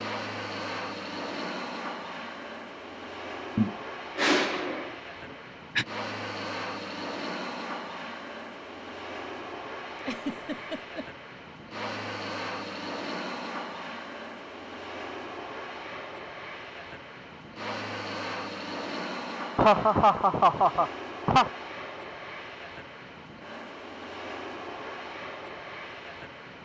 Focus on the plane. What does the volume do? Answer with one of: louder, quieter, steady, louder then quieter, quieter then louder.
steady.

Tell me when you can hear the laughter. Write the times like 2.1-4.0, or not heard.
3.5-5.8, 10.1-11.1, 19.6-21.5.